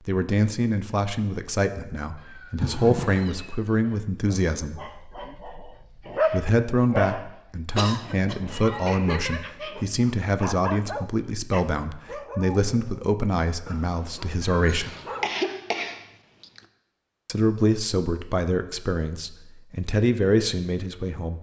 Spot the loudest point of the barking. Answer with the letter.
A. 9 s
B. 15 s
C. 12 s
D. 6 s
D.